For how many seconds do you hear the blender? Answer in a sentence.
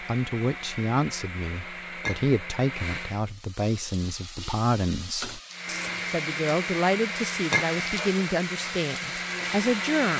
The blender can be heard for 8 seconds in total.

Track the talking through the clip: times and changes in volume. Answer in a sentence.
The talking can be heard from 0.0 to 10.1 s, at a steady volume.